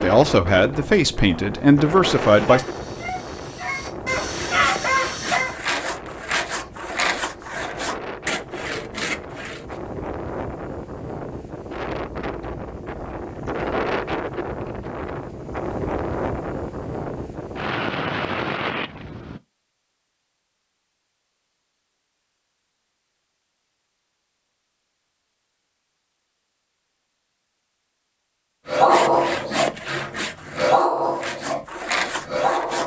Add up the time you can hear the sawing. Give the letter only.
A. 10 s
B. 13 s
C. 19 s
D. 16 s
A.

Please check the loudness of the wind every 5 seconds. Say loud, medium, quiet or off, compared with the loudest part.
loud, medium, loud, loud, off, off, off.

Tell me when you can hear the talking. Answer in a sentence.
You can hear the talking from 0.0 to 2.6 s.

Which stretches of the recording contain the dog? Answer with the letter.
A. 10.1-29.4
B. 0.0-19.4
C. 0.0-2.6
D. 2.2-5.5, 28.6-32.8
D.